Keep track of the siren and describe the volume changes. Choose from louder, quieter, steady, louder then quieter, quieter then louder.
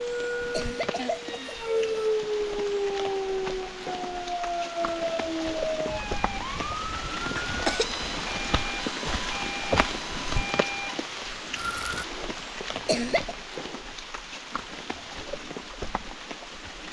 quieter.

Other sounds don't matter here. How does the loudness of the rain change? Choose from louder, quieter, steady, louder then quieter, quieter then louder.
louder then quieter.